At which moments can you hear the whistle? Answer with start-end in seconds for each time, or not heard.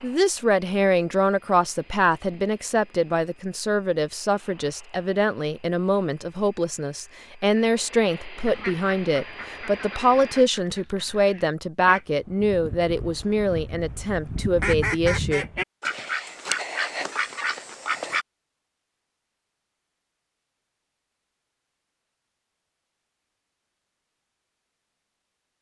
not heard.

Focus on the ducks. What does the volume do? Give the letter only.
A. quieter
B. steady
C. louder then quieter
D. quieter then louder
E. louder
E.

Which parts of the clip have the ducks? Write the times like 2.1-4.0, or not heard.
8.4-18.2.